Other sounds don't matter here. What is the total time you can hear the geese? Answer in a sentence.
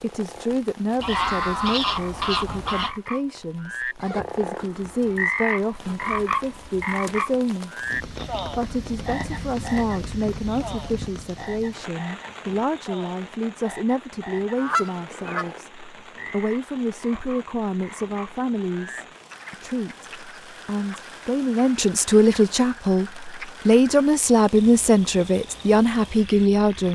You can hear the geese for 3 seconds altogether.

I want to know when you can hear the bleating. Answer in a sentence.
You can't hear the bleating here.